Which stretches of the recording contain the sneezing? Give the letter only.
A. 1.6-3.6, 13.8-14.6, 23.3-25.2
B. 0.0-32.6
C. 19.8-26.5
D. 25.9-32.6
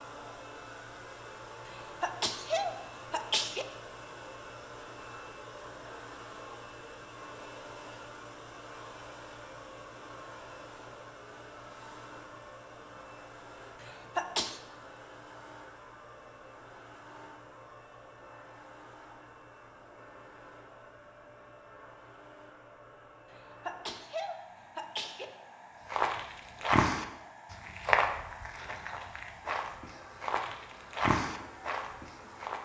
A.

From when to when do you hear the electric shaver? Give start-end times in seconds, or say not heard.
not heard.